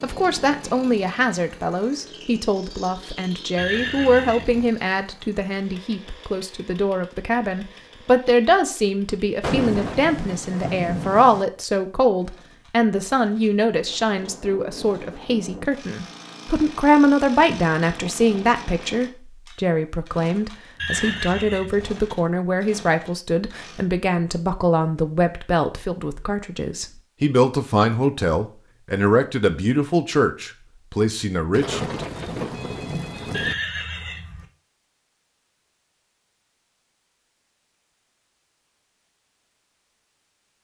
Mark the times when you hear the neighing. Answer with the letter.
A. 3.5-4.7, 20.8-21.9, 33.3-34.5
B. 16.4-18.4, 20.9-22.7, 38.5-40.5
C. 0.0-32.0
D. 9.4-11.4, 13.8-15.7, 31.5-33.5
A.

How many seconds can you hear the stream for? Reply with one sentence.
You can't hear the stream here.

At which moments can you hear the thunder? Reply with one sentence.
The thunder can be heard from 9.4 to 11.4 s, from 13.8 to 15.7 s and from 31.5 to 33.5 s.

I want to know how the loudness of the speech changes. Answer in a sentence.
The loudness of the speech stays about the same.